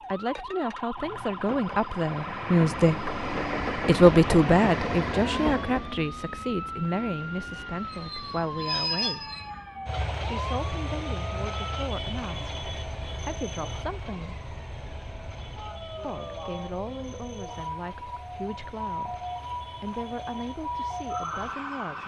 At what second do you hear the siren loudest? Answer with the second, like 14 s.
21 s.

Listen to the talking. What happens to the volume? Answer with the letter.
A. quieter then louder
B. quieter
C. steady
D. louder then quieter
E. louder
B.